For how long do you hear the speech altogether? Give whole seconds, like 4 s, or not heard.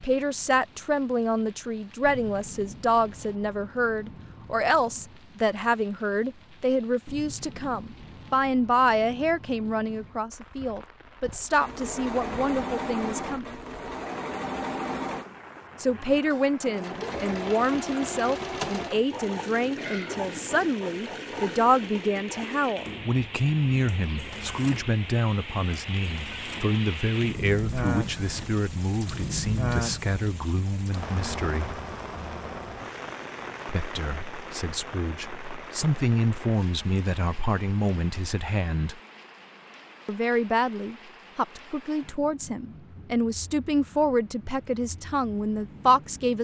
41 s.